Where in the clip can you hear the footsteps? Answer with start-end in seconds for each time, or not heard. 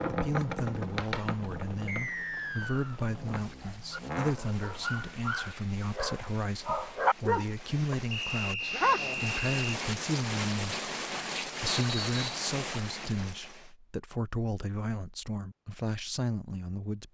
not heard.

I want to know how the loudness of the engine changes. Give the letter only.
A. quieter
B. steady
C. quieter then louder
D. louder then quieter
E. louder
C.